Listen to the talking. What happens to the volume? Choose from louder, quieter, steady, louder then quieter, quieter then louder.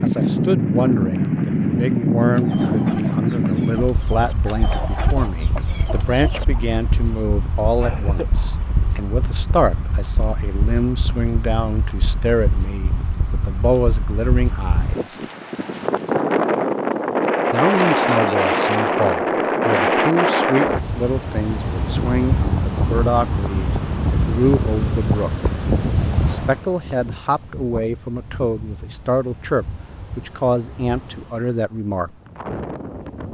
steady.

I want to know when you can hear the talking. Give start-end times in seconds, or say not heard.
0.0-15.2, 17.5-25.5, 26.2-32.1.